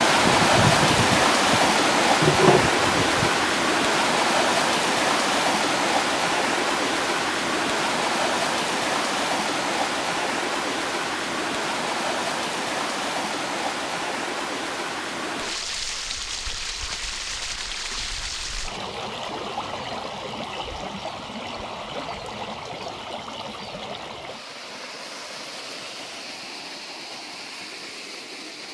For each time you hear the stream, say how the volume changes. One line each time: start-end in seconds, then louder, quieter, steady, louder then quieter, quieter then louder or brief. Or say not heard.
0.0-28.6 quieter.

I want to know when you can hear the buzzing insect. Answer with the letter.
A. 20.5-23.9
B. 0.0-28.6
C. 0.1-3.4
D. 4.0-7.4
C.